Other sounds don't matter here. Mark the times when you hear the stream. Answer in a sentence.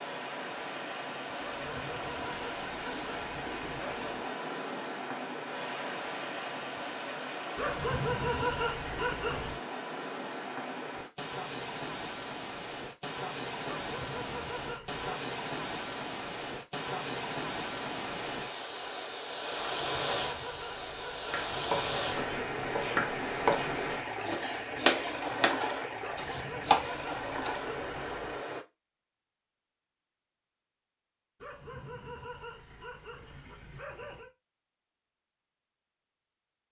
You can hear the stream from 0.0 to 28.6 s.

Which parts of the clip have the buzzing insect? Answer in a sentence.
The buzzing insect can't be heard in this clip.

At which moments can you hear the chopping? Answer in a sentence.
The chopping can be heard from 21.3 to 27.6 s.